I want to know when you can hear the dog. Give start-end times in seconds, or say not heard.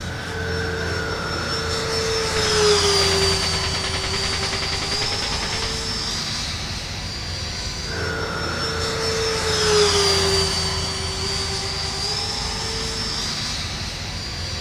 not heard.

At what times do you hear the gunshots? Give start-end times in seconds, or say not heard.
2.4-5.8.